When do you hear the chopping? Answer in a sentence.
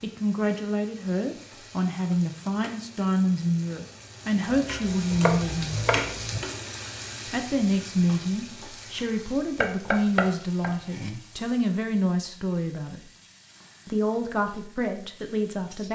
The chopping can be heard from 4.5 to 6.4 s and from 9.6 to 11.2 s.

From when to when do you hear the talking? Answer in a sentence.
The talking can be heard from 0.0 to 5.8 s, from 7.2 to 13.0 s and from 13.8 to 15.9 s.